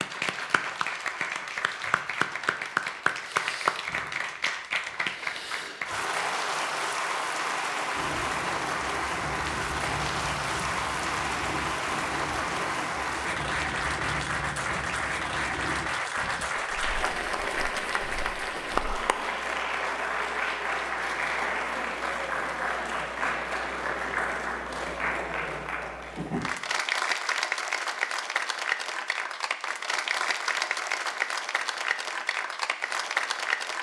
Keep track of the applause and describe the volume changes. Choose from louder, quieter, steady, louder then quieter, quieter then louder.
steady.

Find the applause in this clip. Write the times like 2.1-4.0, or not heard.
0.0-33.7.